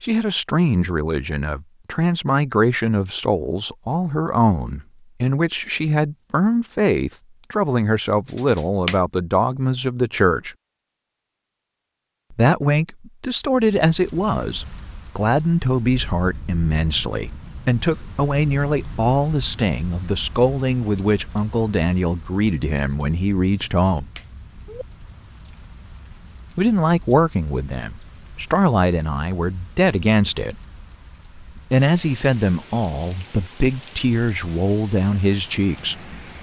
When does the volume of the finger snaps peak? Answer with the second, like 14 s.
9 s.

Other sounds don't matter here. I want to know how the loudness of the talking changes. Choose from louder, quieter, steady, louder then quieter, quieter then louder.
steady.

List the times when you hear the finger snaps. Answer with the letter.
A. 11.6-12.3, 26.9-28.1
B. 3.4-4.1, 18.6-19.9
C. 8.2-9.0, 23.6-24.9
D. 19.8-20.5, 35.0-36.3
C.